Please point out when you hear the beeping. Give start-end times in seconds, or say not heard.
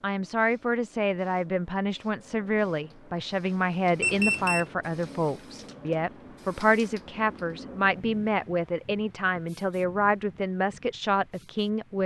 4.0-4.7.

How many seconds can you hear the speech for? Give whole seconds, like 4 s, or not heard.
12 s.